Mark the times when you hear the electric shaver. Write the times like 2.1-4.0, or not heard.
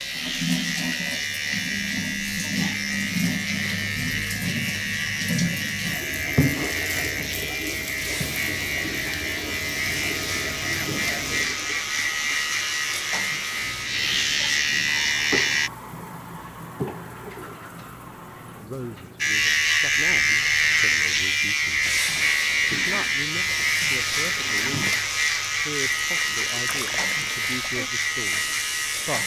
0.0-15.7, 19.2-29.2.